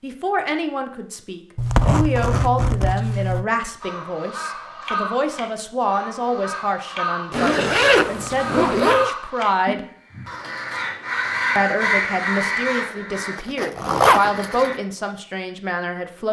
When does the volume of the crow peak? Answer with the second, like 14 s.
12 s.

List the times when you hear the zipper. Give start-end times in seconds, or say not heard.
1.6-3.5, 7.3-9.1, 13.3-14.8.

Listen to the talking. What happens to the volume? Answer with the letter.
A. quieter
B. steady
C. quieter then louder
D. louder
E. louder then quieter
B.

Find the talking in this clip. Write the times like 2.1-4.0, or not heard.
0.0-9.8, 11.6-16.2.